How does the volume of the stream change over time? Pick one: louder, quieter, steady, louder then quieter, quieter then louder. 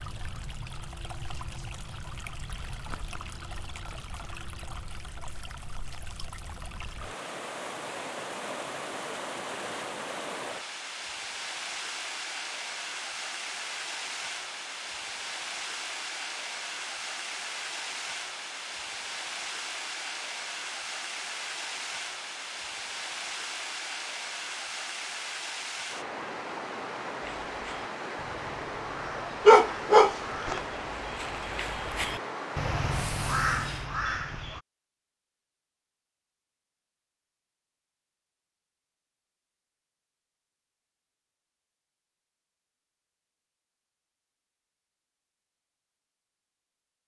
louder.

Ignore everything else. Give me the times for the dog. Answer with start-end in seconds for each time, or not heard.
29.4-30.6.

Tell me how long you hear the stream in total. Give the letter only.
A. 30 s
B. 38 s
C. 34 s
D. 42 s
C.